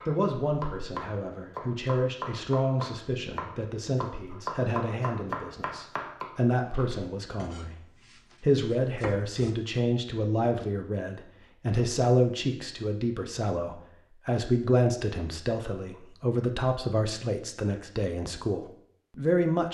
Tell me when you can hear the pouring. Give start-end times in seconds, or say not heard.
not heard.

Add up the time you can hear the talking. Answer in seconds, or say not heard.
19 s.